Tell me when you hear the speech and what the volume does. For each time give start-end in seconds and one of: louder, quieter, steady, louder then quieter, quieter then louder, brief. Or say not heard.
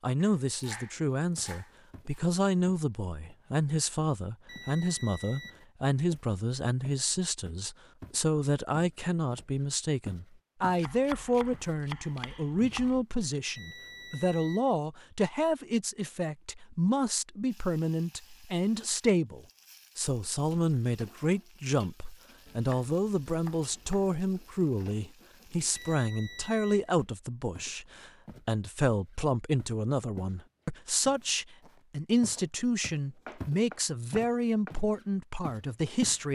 0.0-36.3 steady.